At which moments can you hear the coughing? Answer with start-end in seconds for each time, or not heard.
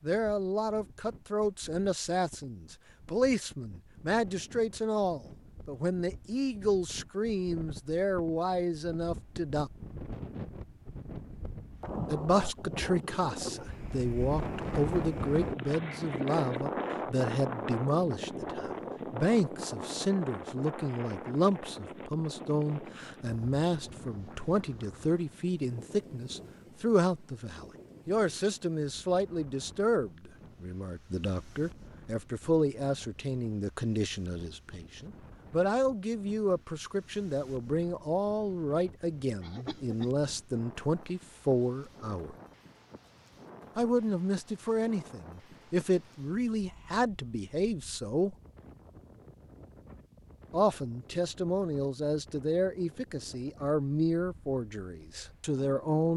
39.4-40.1.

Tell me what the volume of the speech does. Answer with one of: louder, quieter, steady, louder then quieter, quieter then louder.
steady.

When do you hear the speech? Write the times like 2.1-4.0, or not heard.
0.0-9.7, 12.1-42.4, 43.8-48.4, 50.5-56.1.